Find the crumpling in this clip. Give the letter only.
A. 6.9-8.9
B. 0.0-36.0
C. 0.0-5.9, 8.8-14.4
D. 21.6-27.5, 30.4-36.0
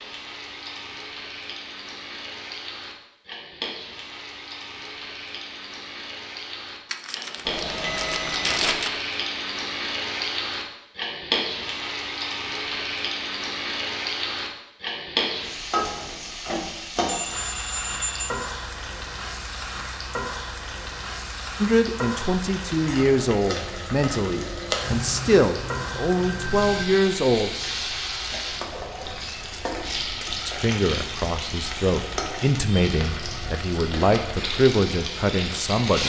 A.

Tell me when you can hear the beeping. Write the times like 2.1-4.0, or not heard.
7.5-8.8, 17.1-18.3, 24.8-26.9.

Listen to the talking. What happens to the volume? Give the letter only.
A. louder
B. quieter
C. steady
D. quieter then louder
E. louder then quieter
C.